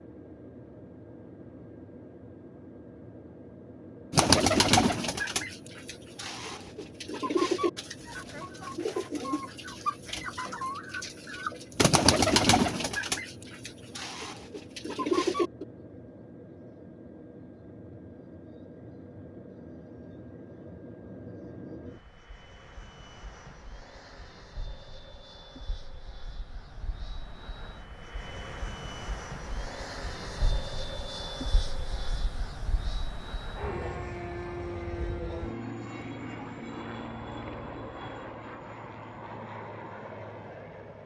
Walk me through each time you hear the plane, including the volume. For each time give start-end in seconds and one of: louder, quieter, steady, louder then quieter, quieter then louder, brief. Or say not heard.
0.0-41.0 louder.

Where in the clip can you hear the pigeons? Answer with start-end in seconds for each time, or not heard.
4.1-15.7.